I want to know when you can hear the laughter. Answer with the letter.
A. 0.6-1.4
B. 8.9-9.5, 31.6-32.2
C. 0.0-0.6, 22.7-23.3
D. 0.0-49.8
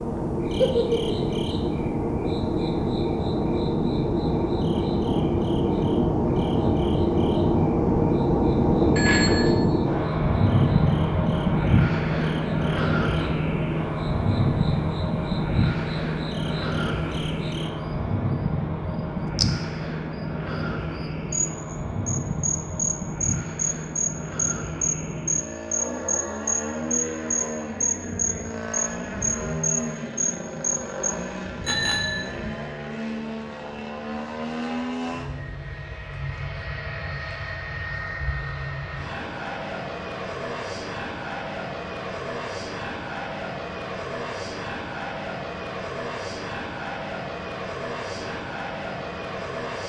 A.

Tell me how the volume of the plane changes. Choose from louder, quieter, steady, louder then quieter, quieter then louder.
quieter.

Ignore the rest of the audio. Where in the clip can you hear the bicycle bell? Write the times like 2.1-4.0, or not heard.
8.9-9.5, 31.6-32.2.